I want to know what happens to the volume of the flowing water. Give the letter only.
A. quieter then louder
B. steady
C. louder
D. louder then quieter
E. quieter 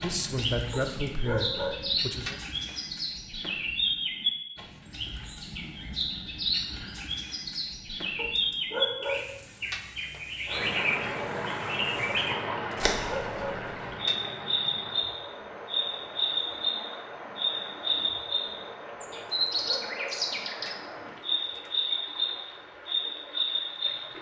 E.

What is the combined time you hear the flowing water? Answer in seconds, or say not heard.
14 s.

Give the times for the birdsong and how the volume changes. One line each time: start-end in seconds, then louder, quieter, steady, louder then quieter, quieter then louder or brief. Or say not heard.
0.0-24.1 steady.